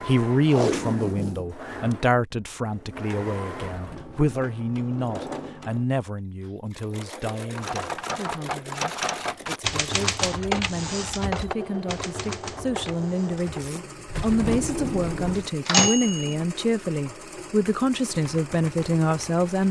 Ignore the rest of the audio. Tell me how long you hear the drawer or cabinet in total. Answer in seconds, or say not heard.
2 s.